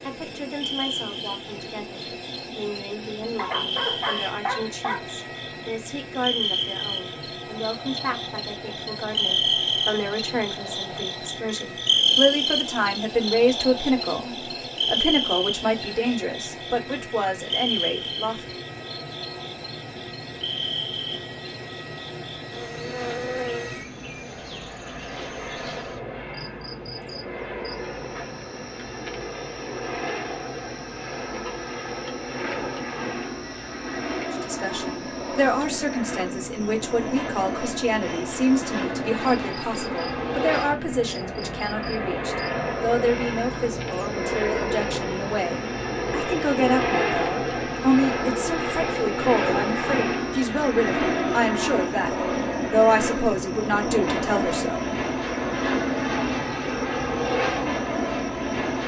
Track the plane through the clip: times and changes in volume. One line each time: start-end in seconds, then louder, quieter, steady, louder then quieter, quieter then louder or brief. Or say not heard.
0.0-58.8 louder.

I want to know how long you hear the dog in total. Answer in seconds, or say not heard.
2 s.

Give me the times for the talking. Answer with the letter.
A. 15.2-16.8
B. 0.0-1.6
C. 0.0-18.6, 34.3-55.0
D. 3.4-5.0
C.